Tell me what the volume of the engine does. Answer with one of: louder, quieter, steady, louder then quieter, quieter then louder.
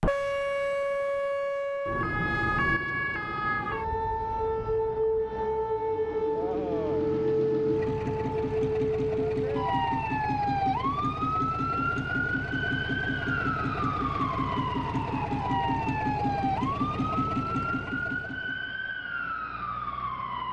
steady.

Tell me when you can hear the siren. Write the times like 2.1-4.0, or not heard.
0.0-20.4.